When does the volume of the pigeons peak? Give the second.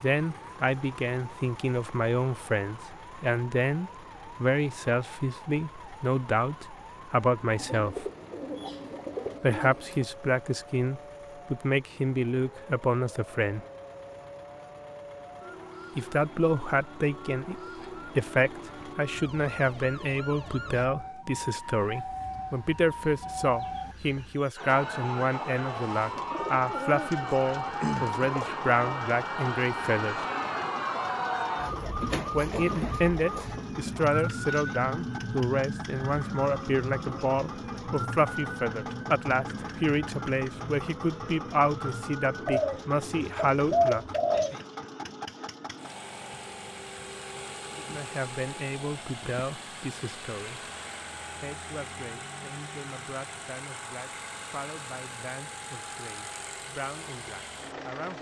44 s.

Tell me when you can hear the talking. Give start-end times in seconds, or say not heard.
0.0-8.1, 9.4-13.7, 15.9-30.1, 32.3-44.5, 47.8-50.7, 51.4-58.1.